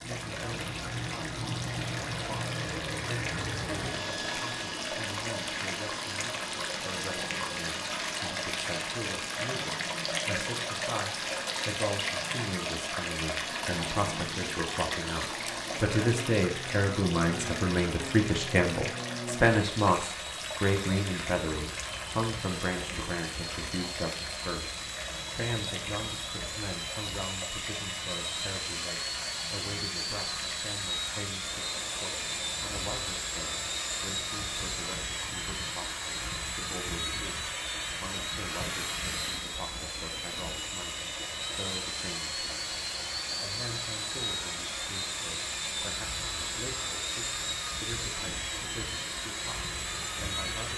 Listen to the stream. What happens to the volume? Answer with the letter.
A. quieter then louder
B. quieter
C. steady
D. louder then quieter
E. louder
B.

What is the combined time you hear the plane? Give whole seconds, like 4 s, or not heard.
51 s.